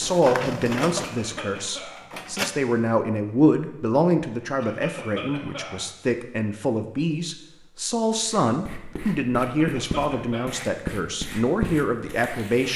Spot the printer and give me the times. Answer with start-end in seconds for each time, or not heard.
0.0-2.5.